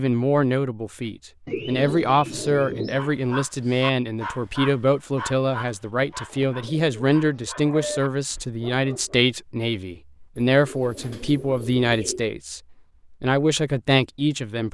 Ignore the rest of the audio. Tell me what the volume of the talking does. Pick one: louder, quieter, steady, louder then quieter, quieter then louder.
steady.